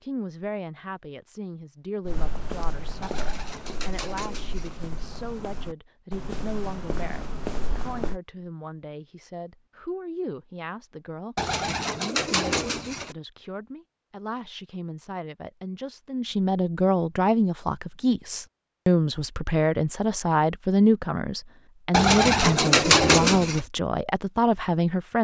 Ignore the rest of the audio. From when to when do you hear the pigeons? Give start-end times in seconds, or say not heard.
3.0-4.8, 11.3-13.2, 21.9-23.6.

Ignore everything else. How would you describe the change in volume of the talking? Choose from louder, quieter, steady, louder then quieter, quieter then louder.
louder.